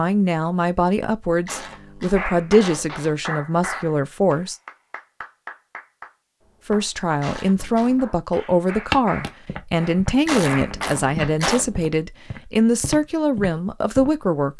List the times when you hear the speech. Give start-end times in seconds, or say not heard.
0.0-4.5, 6.7-14.5.